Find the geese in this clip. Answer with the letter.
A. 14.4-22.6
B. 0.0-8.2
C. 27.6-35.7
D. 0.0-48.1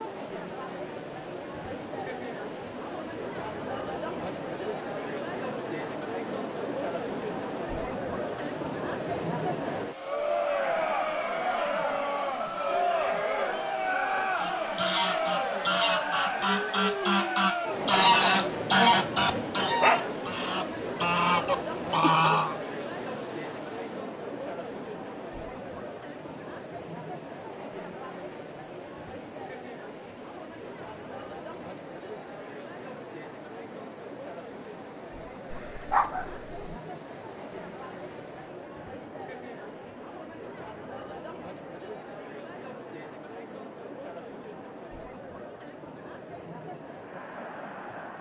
A.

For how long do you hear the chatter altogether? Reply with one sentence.
You can hear the chatter for 48 seconds altogether.